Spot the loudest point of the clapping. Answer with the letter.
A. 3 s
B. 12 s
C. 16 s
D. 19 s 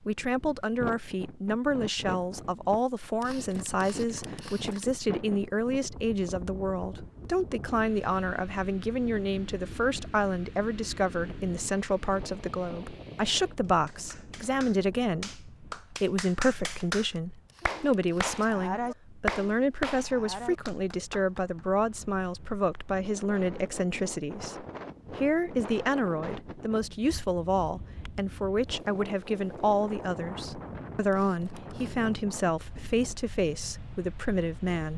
D.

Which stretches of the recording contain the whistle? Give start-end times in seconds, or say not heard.
not heard.